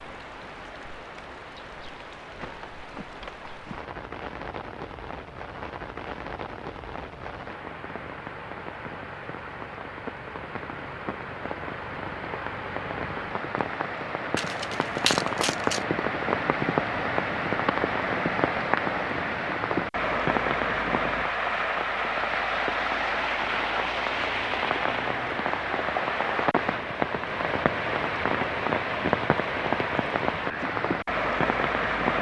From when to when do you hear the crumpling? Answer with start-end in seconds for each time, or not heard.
14.3-15.8.